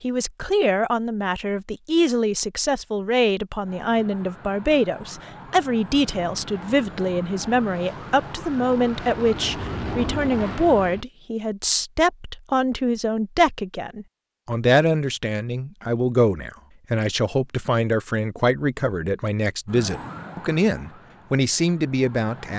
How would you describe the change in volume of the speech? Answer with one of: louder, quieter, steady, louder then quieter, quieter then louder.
steady.